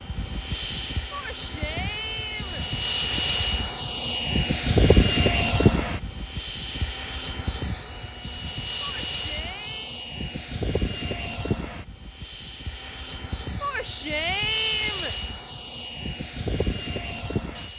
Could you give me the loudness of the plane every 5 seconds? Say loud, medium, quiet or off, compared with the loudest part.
loud, loud, medium, medium.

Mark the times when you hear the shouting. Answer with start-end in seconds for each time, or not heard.
1.1-2.6, 8.8-10.0, 13.6-15.2.